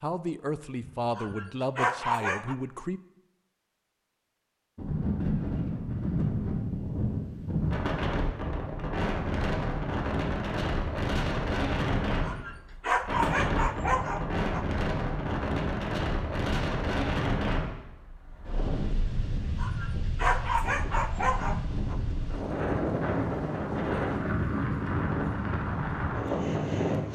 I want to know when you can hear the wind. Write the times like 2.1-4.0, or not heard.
4.8-27.1.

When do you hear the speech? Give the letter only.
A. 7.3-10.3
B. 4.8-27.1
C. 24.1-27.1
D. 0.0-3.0
D.